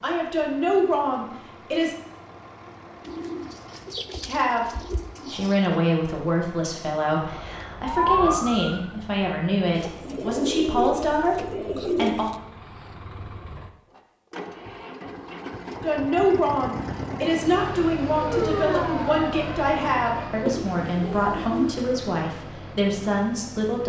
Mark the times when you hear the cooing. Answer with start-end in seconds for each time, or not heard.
3.0-5.8, 9.7-12.3, 20.4-21.8.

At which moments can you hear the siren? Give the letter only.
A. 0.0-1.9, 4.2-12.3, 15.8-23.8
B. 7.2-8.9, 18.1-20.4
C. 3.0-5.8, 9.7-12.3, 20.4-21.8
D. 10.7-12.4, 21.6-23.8
B.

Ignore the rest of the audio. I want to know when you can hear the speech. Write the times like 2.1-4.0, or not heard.
0.0-1.9, 4.2-12.3, 15.8-23.8.